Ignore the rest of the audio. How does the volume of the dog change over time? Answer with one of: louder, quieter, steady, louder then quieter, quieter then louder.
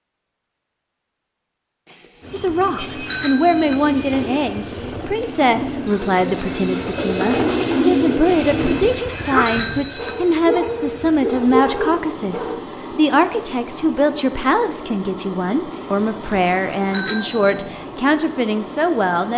louder.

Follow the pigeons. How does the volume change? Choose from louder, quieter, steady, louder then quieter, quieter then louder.
louder.